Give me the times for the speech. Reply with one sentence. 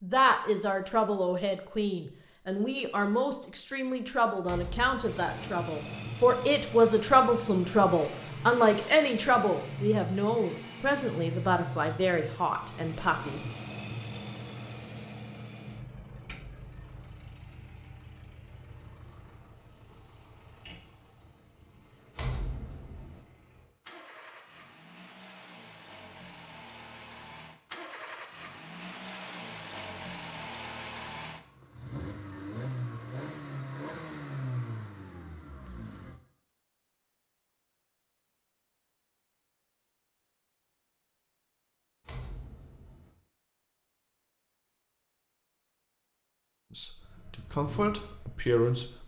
You can hear the speech from 0.0 to 13.4 s and from 46.8 to 49.0 s.